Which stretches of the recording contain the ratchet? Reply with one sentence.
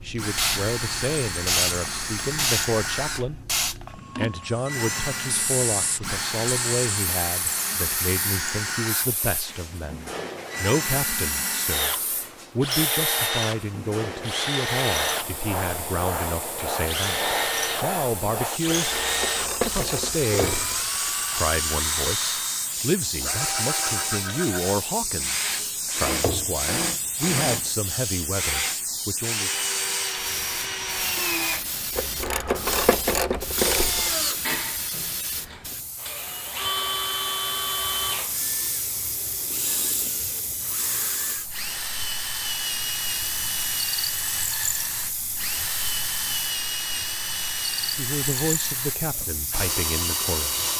You can hear the ratchet from 18.8 to 20.9 s and from 31.9 to 34.1 s.